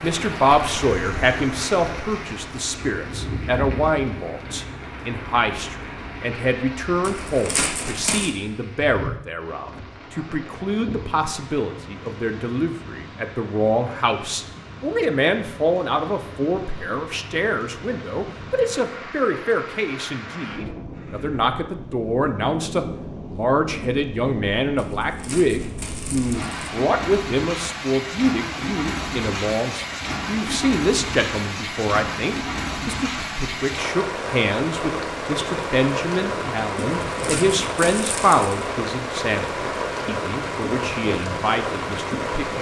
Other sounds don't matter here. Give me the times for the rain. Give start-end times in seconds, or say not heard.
0.0-42.5.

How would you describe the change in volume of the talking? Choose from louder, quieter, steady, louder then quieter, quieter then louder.
steady.